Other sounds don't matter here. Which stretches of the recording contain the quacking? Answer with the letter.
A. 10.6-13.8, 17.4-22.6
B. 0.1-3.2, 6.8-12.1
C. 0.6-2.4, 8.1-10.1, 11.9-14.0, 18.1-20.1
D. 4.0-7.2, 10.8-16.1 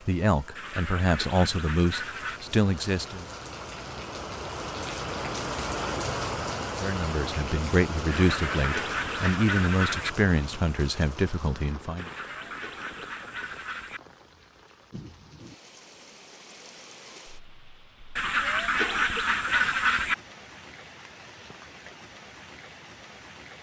C.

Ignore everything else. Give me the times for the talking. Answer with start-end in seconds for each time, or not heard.
0.1-3.2, 6.8-12.1.